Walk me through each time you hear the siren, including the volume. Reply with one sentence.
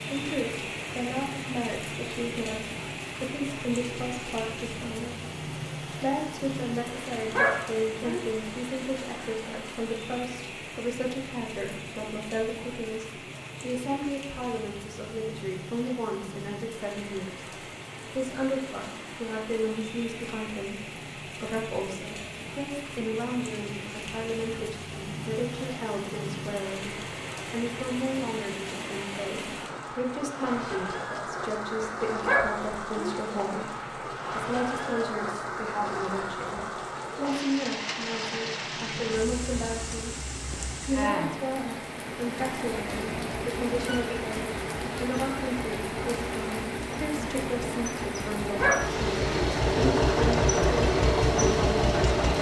You can't hear the siren here.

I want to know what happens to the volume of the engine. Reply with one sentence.
The volume of the engine goes up.